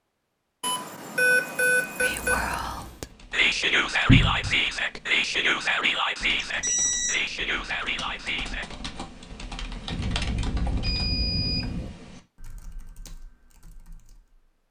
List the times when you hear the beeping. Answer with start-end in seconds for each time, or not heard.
0.6-2.5, 6.4-7.2, 9.9-11.9.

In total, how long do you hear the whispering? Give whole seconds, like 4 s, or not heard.
7 s.